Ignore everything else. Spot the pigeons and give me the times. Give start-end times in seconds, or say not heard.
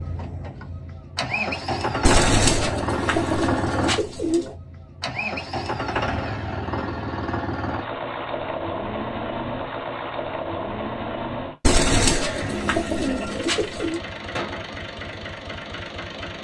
2.0-4.5, 11.6-14.0.